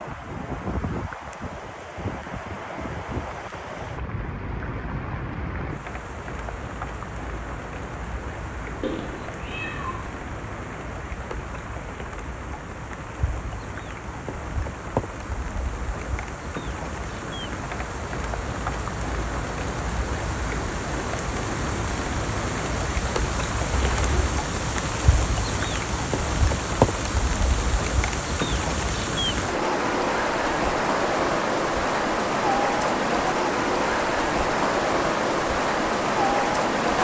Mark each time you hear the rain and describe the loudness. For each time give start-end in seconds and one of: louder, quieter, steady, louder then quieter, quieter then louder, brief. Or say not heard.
0.0-37.0 louder.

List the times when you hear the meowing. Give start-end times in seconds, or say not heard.
8.8-10.1, 23.7-24.4.